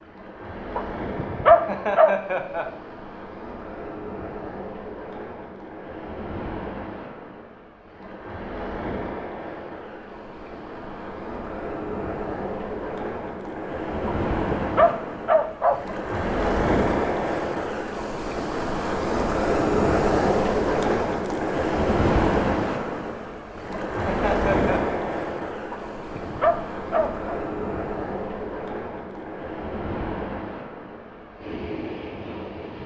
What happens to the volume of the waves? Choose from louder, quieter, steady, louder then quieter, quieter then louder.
louder then quieter.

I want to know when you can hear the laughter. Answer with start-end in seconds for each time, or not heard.
1.5-2.6, 24.1-24.8.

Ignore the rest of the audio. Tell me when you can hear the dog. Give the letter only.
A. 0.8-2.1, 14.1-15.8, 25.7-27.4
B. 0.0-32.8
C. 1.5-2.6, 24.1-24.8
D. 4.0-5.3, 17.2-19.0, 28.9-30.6
A.